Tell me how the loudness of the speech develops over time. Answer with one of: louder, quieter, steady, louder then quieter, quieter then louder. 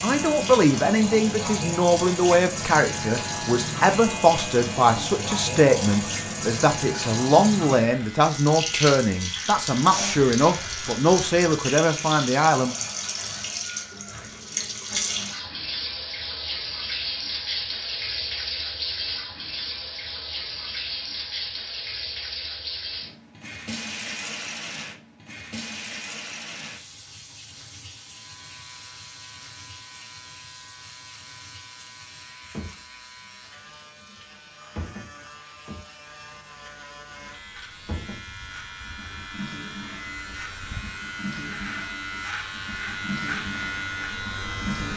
steady.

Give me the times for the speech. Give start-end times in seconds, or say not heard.
0.0-12.8.